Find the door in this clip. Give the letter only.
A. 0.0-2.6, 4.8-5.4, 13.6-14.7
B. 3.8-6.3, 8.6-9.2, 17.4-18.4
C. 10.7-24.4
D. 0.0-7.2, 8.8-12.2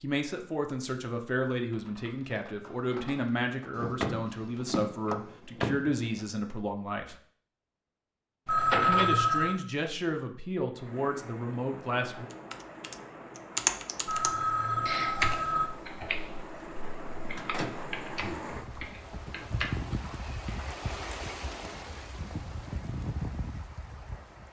B.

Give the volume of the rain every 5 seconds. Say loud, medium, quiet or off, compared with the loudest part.
off, off, medium, loud, loud.